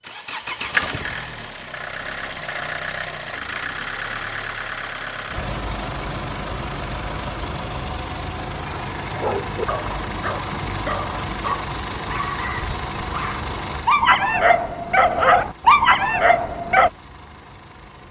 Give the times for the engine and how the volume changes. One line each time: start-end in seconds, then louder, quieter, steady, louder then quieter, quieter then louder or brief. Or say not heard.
0.0-18.0 quieter.